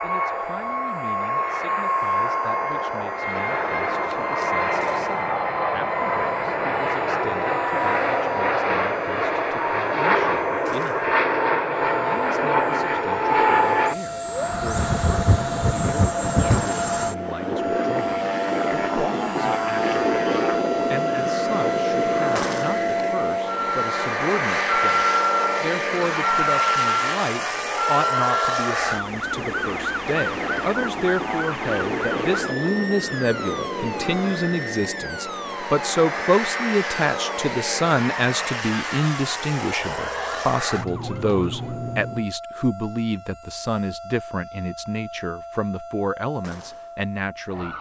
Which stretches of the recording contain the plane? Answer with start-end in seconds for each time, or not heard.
0.0-42.3.